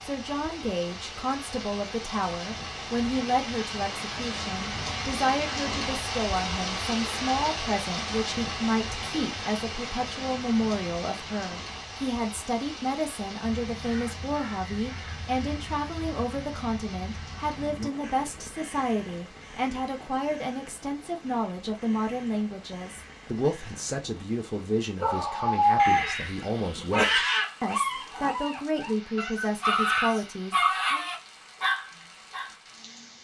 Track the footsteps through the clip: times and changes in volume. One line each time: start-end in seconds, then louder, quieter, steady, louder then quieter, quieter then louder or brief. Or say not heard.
not heard.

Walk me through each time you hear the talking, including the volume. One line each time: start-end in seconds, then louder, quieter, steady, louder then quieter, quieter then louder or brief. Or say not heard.
0.0-31.1 steady.